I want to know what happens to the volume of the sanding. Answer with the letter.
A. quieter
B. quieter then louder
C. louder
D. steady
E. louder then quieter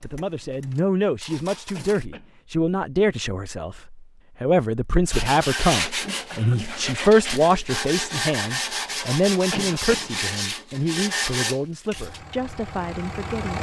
D.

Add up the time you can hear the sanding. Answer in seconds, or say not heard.
7 s.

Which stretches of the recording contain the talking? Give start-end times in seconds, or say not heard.
0.0-13.5.